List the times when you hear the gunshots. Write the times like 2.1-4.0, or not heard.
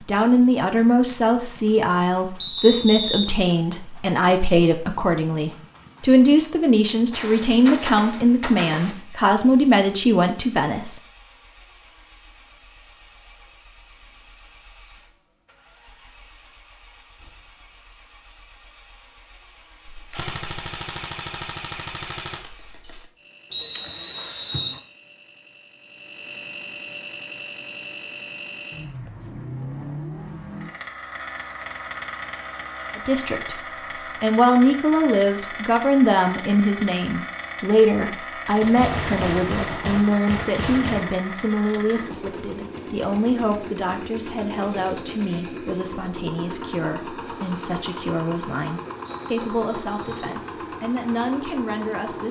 7.1-8.9, 19.9-23.1, 38.6-41.2.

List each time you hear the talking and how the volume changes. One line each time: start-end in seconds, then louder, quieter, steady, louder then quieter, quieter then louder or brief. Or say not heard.
0.1-11.0 steady
33.0-33.6 brief
34.2-52.2 quieter.